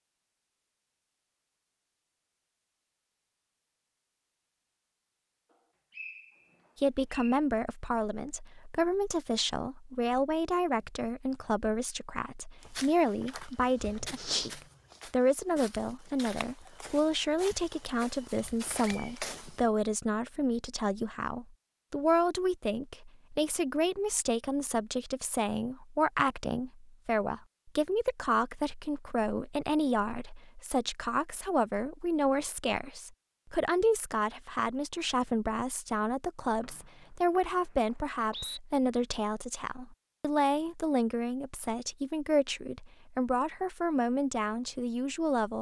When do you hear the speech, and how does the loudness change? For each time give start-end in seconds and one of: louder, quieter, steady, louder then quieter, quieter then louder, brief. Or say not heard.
6.8-45.5 steady.